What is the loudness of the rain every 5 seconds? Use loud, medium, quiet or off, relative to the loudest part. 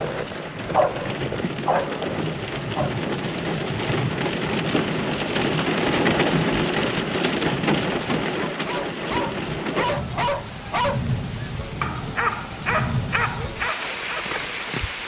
loud, loud, medium.